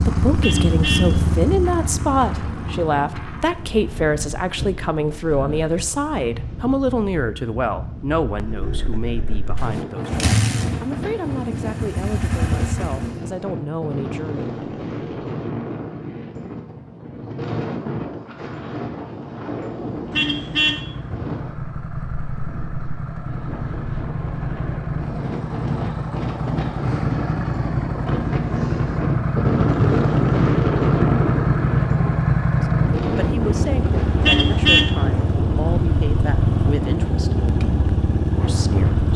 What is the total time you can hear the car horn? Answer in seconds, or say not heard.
2 s.